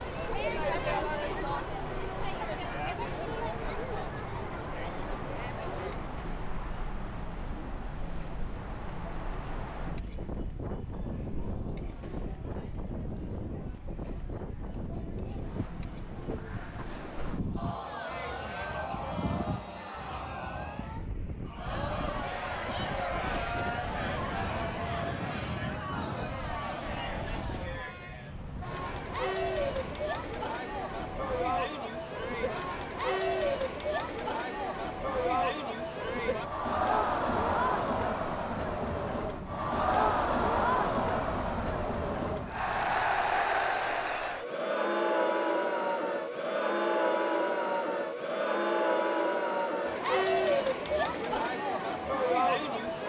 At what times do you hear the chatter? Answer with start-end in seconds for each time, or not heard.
0.0-53.0.